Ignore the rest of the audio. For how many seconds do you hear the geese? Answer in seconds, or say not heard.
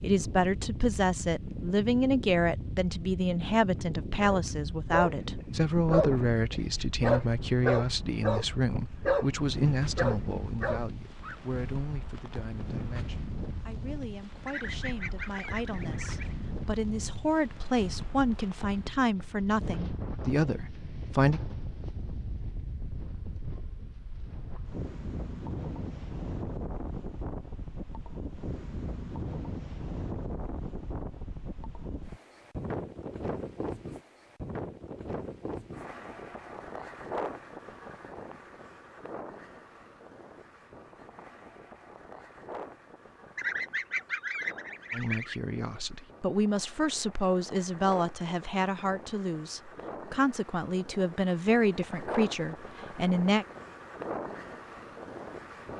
4 s.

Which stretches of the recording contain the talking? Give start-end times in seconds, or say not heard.
0.0-21.4, 44.9-53.5.